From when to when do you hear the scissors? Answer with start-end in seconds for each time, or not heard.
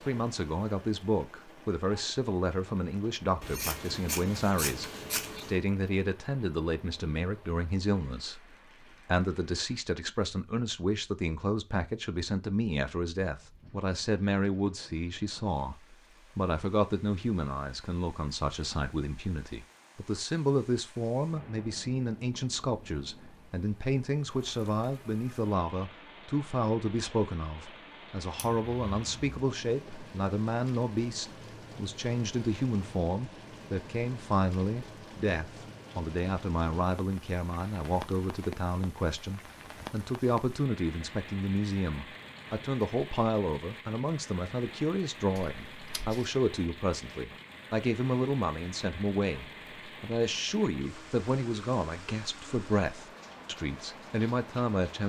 3.4-5.6, 28.4-29.4, 45.4-46.3.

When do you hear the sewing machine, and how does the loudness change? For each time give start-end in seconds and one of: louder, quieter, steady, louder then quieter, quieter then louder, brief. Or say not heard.
not heard.